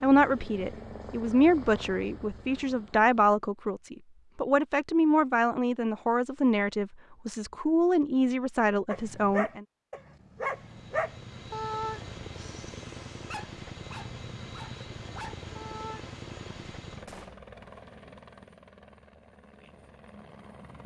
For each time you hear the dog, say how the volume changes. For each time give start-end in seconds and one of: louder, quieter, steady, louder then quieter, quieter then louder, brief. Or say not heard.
8.9-16.1 quieter.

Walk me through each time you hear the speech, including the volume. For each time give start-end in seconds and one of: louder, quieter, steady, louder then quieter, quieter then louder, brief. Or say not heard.
0.0-9.7 steady.